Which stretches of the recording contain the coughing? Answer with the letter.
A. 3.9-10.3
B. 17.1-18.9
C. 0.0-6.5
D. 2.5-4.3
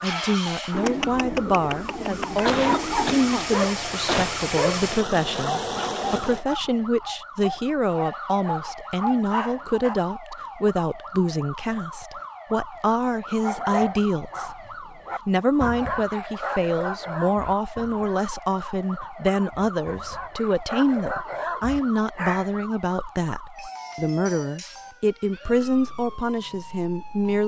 D.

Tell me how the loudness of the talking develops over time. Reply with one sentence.
The volume of the talking stays about the same.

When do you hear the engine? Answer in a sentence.
You can hear the engine from 0.0 to 6.5 s.